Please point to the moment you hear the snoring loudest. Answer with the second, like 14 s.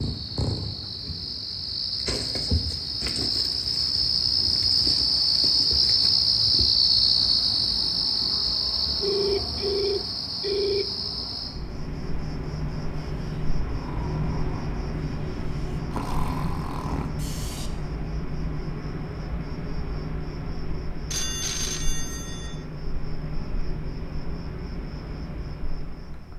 16 s.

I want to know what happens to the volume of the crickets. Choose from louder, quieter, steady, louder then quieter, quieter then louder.
quieter.